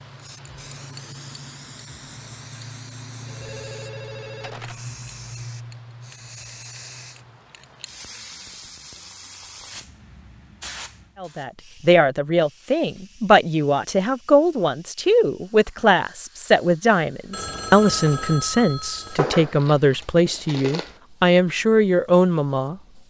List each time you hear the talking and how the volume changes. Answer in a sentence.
You can hear the talking from 11.2 to 22.8 s, at a steady volume.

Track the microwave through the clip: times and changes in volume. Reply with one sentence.
The microwave can't be heard in this clip.